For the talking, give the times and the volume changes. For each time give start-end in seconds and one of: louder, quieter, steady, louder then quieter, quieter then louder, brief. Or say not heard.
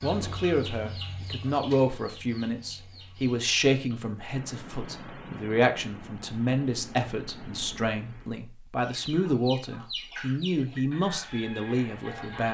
0.0-12.4 steady.